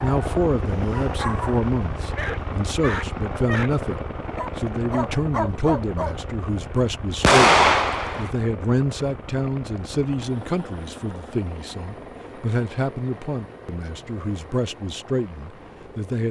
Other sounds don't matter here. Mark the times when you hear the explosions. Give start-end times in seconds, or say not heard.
7.2-8.3.